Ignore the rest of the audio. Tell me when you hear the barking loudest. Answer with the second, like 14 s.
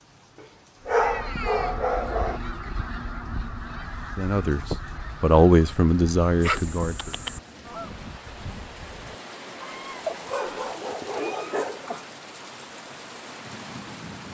1 s.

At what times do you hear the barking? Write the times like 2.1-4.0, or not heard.
0.3-2.4, 6.4-7.4, 10.1-12.2.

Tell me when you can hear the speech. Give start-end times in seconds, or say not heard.
4.2-7.1.